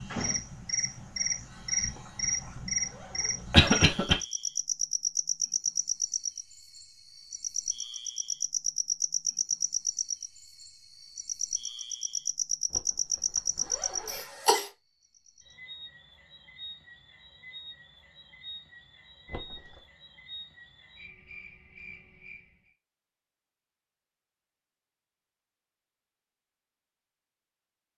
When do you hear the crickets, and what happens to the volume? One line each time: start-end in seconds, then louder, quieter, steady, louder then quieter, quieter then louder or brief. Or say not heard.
0.0-22.7 quieter.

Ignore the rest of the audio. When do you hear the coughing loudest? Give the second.
4 s.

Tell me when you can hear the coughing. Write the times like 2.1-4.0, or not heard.
3.5-4.2, 14.1-14.7.